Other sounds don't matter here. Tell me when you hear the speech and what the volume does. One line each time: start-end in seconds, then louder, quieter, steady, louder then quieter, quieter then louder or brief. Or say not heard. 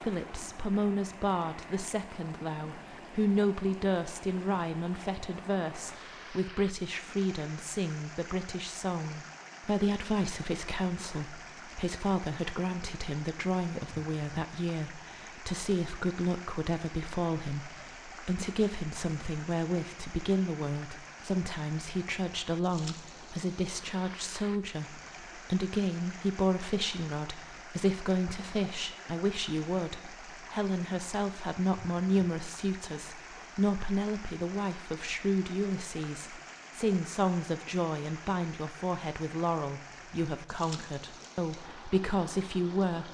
0.0-43.0 steady.